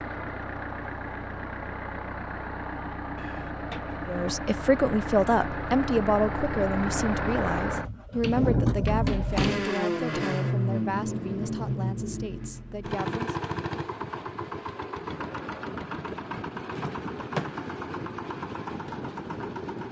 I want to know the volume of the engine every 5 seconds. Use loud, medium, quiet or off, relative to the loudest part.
medium, loud, loud, medium.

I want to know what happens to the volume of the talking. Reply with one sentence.
The volume of the talking goes down.